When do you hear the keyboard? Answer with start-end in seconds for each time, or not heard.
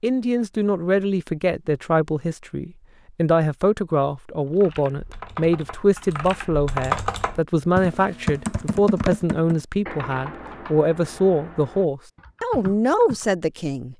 4.5-13.3.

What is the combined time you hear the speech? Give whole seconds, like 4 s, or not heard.
14 s.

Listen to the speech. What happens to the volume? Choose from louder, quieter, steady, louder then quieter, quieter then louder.
steady.